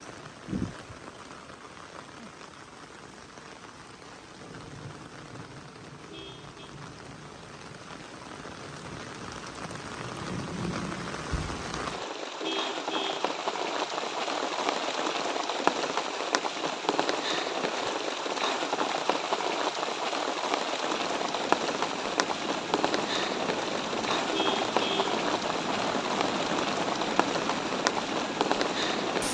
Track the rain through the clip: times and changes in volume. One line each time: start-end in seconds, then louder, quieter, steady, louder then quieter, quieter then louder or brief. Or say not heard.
0.0-29.2 louder.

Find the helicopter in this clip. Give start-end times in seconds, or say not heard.
20.9-29.2.